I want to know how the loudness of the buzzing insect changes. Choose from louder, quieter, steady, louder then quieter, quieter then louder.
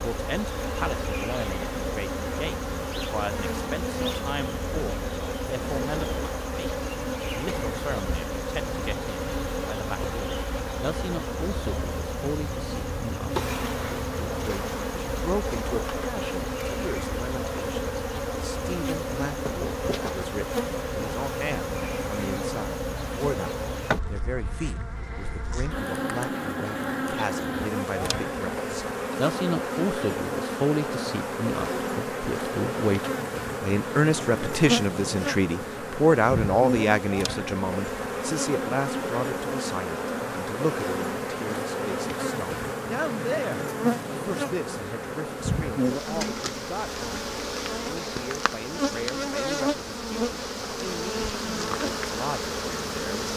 steady.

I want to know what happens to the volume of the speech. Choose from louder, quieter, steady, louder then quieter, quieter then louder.
louder then quieter.